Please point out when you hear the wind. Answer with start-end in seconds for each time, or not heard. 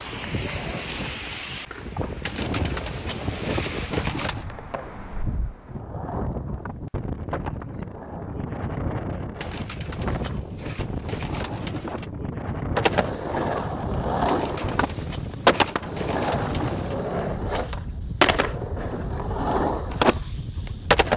0.0-21.1.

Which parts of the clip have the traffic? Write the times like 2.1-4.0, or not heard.
not heard.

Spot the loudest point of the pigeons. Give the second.
4 s.